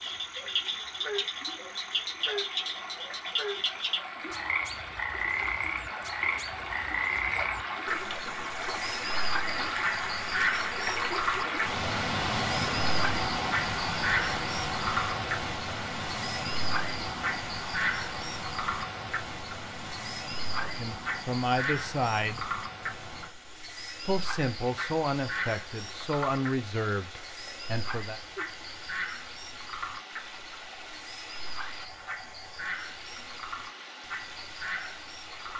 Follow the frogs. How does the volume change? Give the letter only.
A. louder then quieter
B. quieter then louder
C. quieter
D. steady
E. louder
C.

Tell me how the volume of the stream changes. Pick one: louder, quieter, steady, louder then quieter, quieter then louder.
louder then quieter.